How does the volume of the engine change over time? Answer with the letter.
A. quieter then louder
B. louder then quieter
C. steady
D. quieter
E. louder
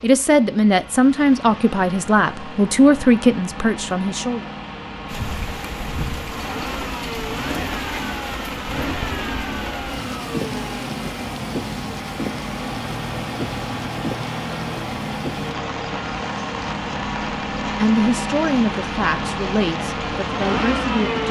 E.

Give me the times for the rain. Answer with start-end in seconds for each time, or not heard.
5.0-21.2.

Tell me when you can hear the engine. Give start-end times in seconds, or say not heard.
0.0-21.2.